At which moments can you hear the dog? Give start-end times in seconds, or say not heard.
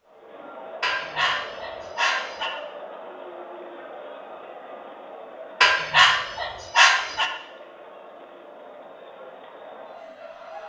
0.8-2.5, 5.6-7.3.